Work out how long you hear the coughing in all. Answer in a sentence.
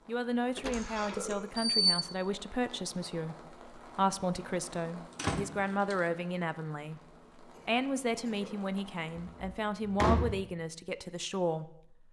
You can hear the coughing for 2 seconds altogether.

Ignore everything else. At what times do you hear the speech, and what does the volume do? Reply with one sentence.
The speech can be heard from 0.1 to 12.0 s, at a steady volume.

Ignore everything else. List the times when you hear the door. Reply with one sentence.
The door can be heard from 0.6 to 2.0 s, from 5.2 to 6.0 s and from 9.2 to 10.4 s.